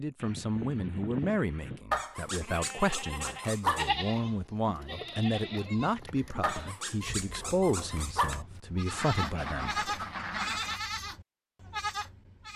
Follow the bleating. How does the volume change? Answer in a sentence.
The loudness of the bleating goes down, then up.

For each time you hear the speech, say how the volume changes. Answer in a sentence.
You can hear the speech from 0.0 to 9.8 s, at a steady volume.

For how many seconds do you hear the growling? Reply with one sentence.
You can hear the growling for 4 seconds altogether.